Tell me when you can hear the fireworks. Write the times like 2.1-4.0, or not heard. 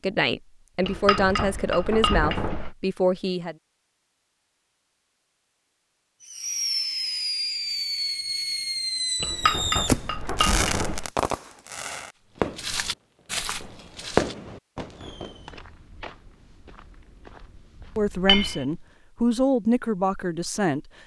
6.2-15.5.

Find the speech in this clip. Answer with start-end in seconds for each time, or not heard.
0.0-3.5, 17.9-20.9.